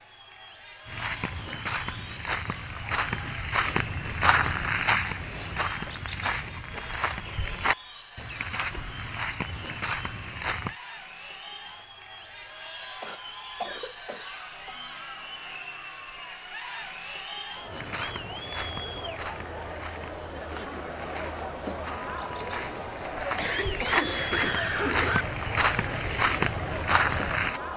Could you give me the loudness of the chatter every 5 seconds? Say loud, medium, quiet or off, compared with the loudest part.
medium, medium, medium, loud, loud, loud.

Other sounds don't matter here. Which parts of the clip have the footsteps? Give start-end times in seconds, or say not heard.
0.8-10.8, 17.6-27.6.